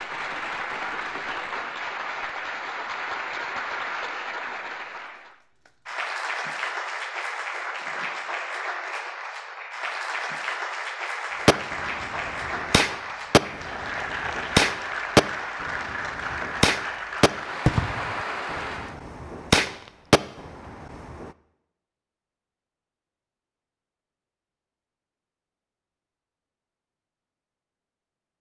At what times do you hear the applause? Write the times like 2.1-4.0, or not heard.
0.0-18.9.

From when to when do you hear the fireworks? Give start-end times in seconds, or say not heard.
11.4-21.3.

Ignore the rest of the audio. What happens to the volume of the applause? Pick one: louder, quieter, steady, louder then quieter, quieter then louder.
steady.